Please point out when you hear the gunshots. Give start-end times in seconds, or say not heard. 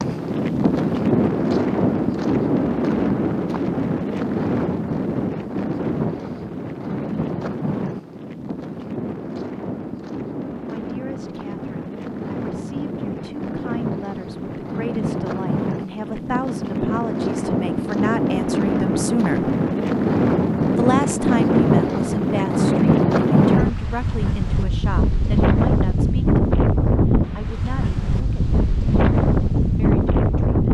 not heard.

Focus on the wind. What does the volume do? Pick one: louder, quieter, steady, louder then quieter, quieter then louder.
quieter then louder.